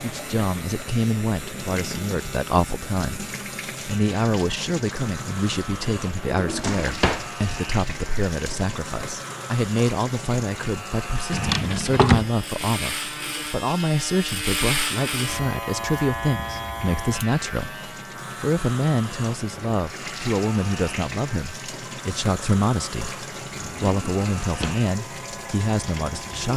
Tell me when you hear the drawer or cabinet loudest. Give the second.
12 s.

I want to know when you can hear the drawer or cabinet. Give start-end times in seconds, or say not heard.
6.3-7.3, 11.3-12.2, 23.6-24.8.